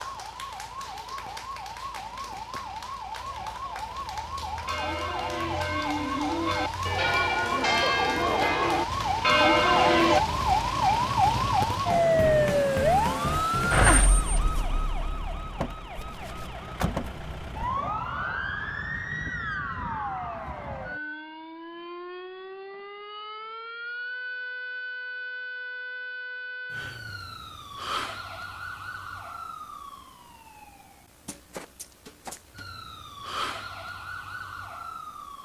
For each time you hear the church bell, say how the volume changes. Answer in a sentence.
You can hear the church bell from 4.7 to 10.2 s, getting louder.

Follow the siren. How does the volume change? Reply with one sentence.
The volume of the siren goes up, then down.